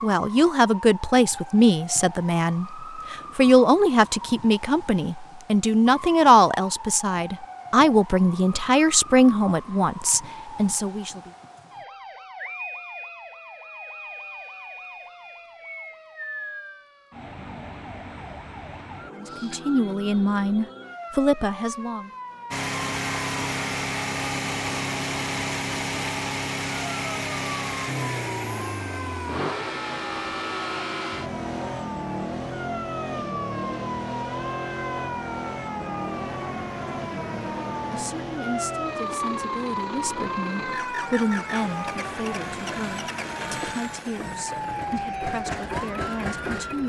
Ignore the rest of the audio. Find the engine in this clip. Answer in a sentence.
You can hear the engine from 22.5 to 46.8 s.